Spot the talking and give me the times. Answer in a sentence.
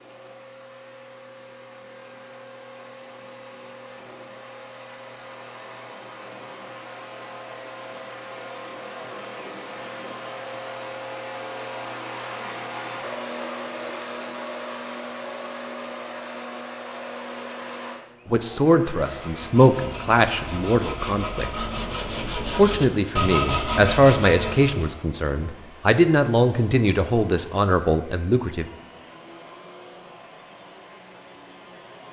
You can hear the talking from 18.2 to 21.6 s and from 22.6 to 28.6 s.